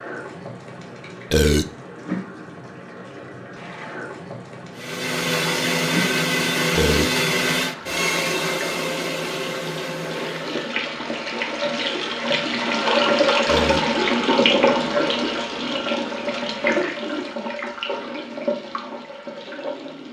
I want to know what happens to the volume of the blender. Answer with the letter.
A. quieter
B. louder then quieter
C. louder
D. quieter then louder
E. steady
A.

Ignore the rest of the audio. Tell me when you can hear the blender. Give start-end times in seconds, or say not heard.
4.8-10.7.